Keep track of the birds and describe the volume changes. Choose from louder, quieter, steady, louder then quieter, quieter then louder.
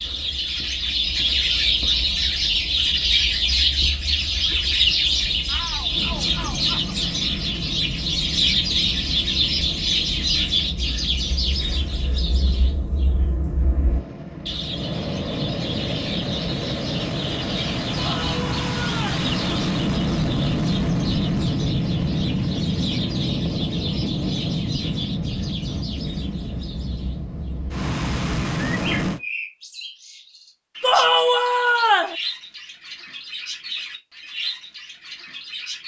quieter.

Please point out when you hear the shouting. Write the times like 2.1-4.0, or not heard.
5.5-7.0, 17.9-19.2, 30.8-32.1.